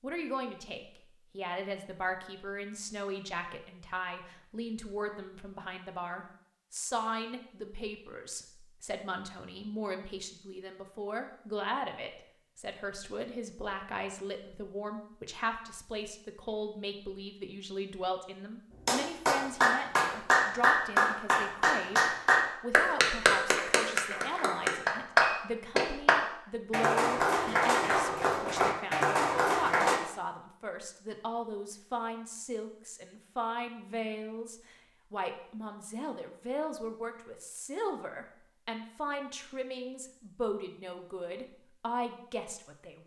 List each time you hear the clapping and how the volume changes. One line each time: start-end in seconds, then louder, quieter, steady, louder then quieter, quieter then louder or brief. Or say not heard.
18.9-30.0 steady.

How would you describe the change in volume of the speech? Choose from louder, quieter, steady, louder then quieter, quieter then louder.
steady.